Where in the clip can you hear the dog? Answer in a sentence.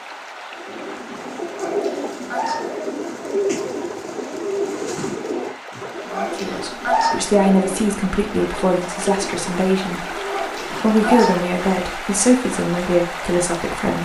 You can hear the dog from 1.6 to 2.8 s, from 6.1 to 7.3 s and from 10.2 to 11.5 s.